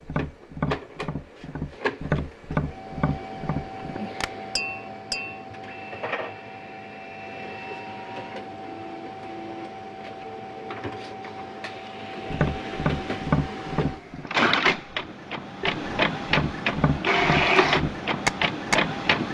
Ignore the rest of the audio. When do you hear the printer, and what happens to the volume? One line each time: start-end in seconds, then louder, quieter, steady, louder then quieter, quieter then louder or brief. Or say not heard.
0.0-19.2 louder.